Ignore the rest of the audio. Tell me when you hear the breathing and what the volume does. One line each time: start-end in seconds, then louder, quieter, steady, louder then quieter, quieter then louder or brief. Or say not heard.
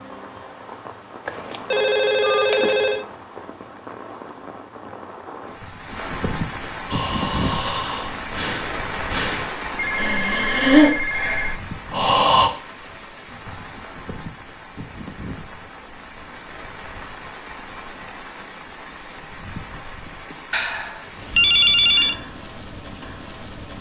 6.8-12.5 louder then quieter.